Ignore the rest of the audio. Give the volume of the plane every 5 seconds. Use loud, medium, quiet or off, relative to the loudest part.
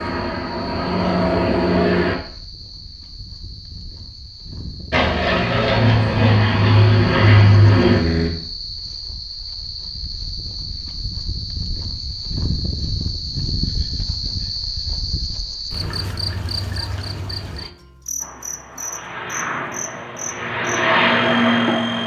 loud, loud, off, quiet, loud.